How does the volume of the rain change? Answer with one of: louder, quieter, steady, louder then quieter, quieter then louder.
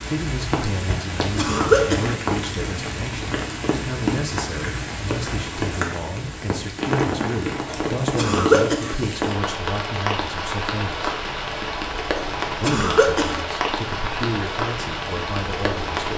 steady.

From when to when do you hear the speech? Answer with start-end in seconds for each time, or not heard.
0.0-11.2, 12.6-16.1.